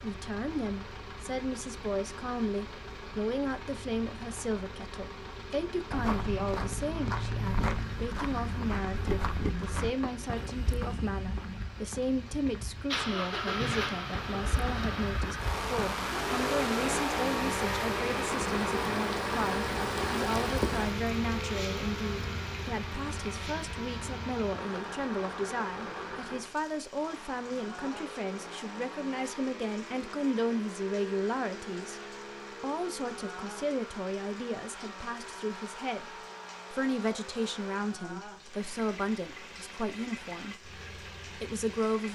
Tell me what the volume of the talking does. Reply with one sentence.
The loudness of the talking stays about the same.